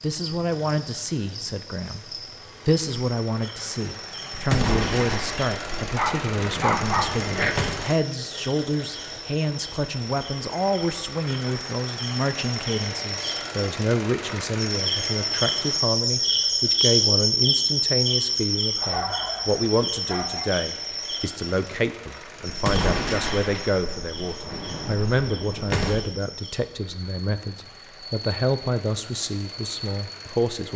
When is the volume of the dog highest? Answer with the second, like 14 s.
7 s.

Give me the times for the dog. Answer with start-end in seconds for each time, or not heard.
5.8-7.5, 18.8-20.5.